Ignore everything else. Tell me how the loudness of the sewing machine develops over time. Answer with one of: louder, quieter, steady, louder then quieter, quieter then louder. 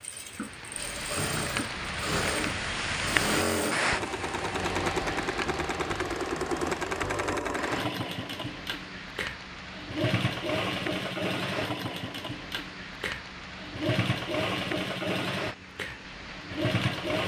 steady.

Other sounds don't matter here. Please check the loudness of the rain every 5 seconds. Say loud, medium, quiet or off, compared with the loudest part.
loud, medium, medium, medium.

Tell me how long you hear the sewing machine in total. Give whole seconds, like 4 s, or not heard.
17 s.